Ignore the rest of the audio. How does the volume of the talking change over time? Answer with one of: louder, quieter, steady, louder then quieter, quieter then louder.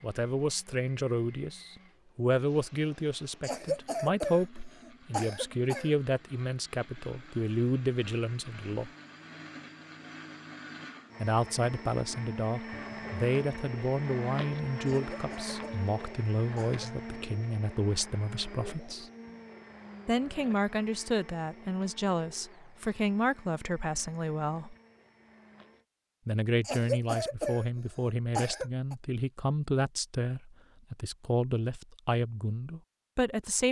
steady.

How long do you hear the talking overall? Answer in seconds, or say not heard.
29 s.